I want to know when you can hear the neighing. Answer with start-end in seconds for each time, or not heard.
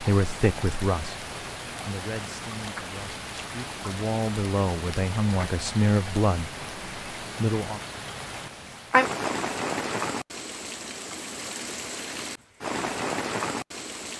not heard.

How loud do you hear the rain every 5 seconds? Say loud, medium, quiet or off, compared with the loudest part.
medium, loud, loud.